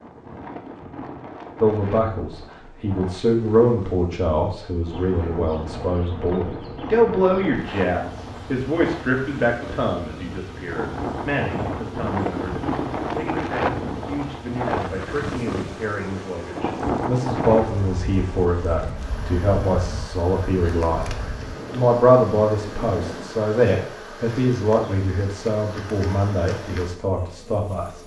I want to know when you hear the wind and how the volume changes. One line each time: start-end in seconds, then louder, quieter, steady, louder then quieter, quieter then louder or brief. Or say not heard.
0.0-23.5 louder then quieter.